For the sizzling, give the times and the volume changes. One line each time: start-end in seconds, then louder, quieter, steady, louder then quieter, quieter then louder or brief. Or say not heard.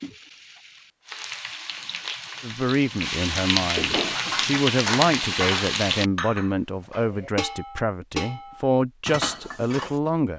0.0-6.1 louder.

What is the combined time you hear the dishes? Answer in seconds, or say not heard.
6 s.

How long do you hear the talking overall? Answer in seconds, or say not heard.
8 s.